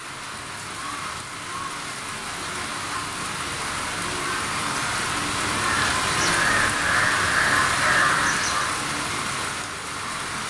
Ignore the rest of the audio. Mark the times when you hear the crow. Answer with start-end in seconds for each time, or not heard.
5.6-8.7.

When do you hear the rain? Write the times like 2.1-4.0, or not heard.
0.0-10.4.